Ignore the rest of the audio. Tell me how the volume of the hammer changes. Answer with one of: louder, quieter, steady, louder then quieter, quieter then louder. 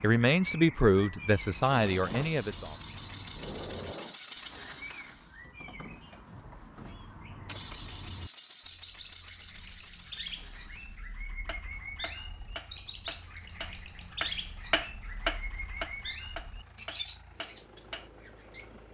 louder then quieter.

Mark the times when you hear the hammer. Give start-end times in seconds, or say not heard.
11.4-18.1.